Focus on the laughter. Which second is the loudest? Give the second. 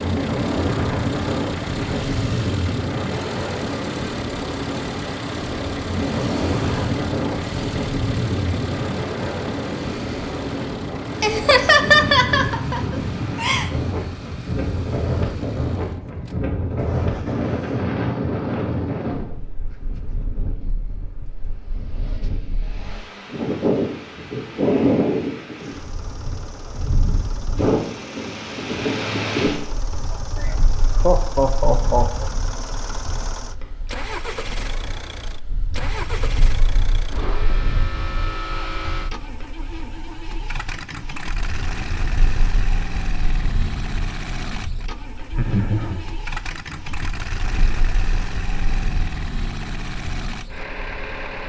12 s.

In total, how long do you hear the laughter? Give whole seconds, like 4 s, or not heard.
5 s.